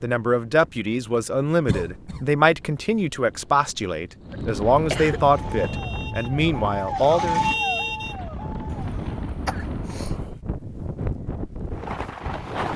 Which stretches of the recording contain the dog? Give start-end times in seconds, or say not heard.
not heard.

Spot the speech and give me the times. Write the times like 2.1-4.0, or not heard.
0.0-7.4.